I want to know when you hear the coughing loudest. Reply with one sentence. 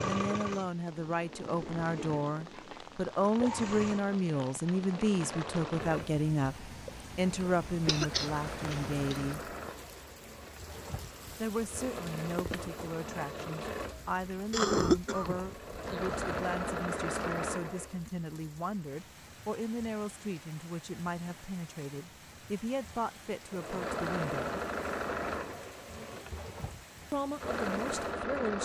The loudest moment of the coughing is at 15 seconds.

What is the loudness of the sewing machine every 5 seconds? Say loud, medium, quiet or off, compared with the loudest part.
medium, medium, medium, loud, loud, loud.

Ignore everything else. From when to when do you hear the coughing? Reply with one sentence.
The coughing can be heard from 7.8 to 9.2 s and from 14.5 to 16.4 s.